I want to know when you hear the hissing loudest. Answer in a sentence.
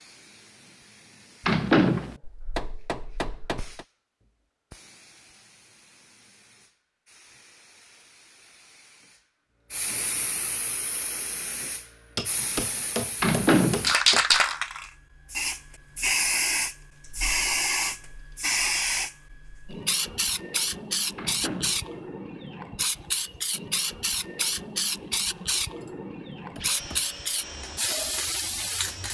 The volume of the hissing peaks at 14 seconds.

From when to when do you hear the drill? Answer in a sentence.
The drill can be heard from 26.4 to 29.0 s.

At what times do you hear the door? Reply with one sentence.
You can hear the door from 1.4 to 2.1 s, from 13.2 to 13.9 s and from 21.1 to 21.9 s.